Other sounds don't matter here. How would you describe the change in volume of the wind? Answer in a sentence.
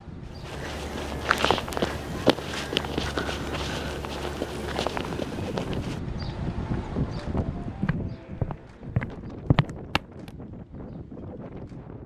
The loudness of the wind goes up, then down.